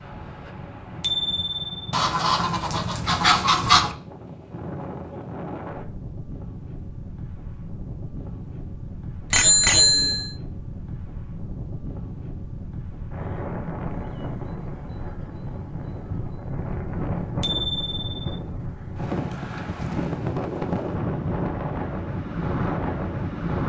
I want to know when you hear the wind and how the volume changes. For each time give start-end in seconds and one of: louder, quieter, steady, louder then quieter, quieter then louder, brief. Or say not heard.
0.0-23.6 louder.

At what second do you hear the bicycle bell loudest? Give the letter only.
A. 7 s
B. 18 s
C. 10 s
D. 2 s
C.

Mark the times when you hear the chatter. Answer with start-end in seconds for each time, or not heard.
not heard.